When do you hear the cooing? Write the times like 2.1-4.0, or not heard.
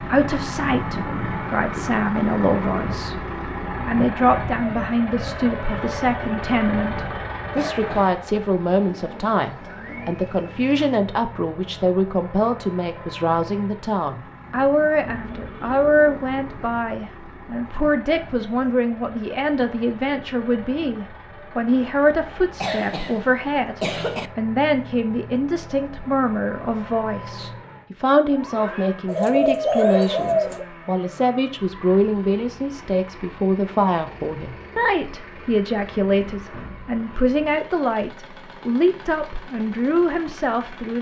8.8-11.0, 15.1-16.7, 29.1-30.6.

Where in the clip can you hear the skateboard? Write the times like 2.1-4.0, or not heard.
not heard.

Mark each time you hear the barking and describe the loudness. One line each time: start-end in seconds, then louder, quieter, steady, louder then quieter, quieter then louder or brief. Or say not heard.
not heard.